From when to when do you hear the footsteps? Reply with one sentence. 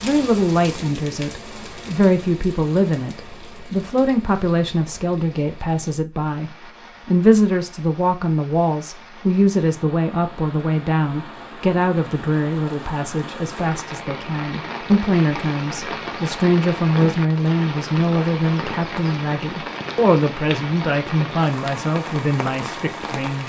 You can't hear the footsteps here.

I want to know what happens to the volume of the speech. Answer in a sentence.
The volume of the speech stays about the same.